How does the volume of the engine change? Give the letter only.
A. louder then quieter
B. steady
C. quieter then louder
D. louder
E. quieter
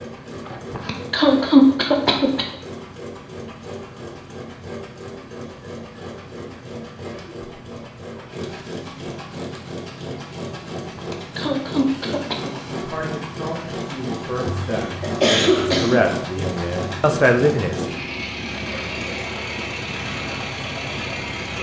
D.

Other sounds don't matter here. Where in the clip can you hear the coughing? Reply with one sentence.
You can hear the coughing from 0.5 to 2.5 s, from 10.8 to 12.5 s and from 14.4 to 16.0 s.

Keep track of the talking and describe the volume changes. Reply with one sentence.
The loudness of the talking goes up.